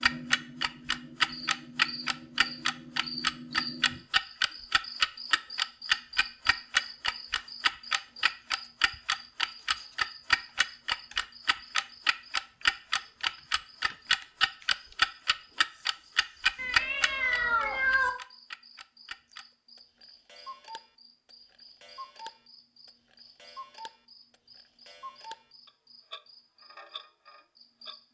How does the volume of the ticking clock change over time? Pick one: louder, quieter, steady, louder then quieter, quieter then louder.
quieter.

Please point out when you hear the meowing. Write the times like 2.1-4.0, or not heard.
16.6-18.1.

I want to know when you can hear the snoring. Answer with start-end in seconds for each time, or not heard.
not heard.